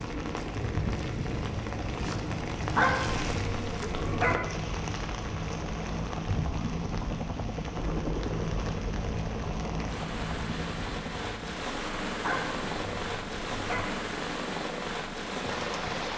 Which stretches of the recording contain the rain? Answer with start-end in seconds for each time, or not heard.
0.0-16.1.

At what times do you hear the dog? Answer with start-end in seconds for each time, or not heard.
2.7-4.3, 12.2-13.8.